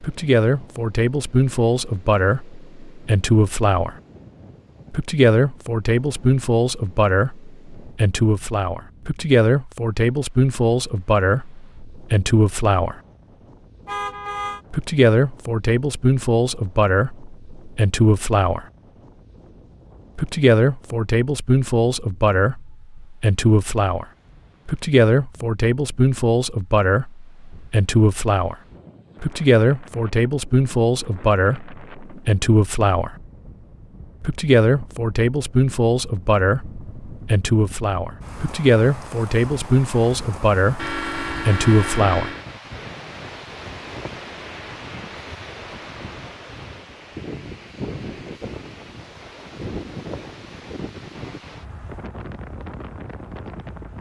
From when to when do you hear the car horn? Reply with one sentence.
You can hear the car horn from 13.8 to 14.6 s and from 40.8 to 42.5 s.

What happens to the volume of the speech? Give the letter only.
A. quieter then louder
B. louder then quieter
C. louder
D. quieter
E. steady
E.